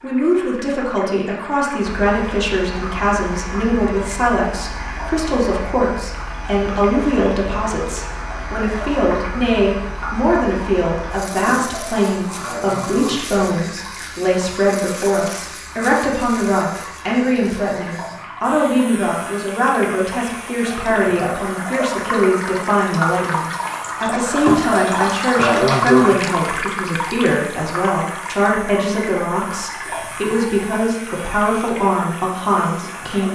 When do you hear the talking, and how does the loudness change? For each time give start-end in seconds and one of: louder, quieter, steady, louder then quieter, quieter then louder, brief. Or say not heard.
0.0-33.3 steady.